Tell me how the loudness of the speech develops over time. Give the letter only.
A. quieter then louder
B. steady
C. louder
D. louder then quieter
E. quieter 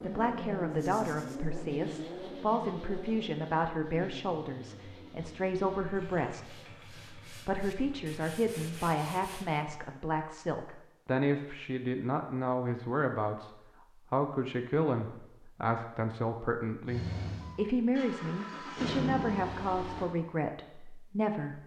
B.